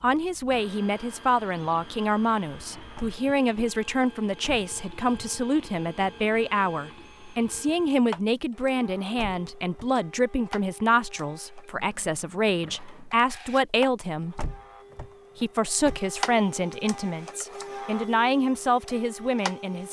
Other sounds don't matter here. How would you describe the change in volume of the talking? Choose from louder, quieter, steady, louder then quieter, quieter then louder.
steady.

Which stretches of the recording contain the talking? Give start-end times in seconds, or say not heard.
0.0-14.4, 15.3-19.8.